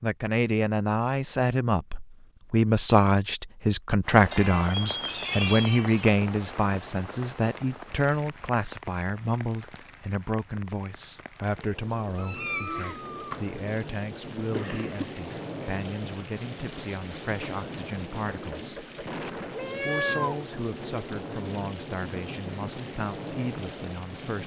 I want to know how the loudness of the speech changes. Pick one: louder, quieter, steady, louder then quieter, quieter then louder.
quieter.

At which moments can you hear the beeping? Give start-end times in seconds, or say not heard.
not heard.